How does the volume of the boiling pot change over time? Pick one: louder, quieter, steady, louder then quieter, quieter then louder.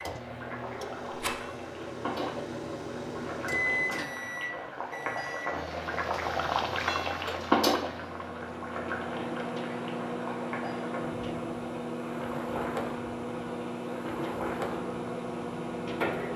louder then quieter.